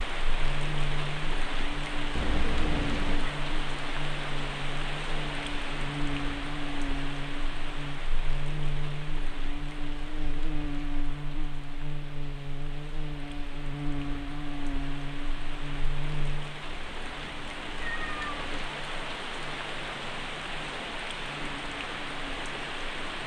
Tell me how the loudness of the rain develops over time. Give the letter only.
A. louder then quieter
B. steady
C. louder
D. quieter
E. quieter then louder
E.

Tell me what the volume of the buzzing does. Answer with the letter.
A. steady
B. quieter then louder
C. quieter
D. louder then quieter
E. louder
C.